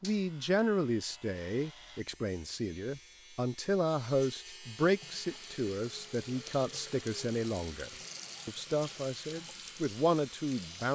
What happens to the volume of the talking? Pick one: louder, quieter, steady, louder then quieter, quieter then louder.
steady.